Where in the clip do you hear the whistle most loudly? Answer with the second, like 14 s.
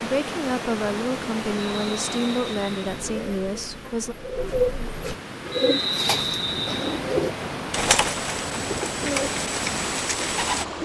6 s.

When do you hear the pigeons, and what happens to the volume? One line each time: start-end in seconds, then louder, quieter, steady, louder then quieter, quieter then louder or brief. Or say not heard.
3.0-10.7 steady.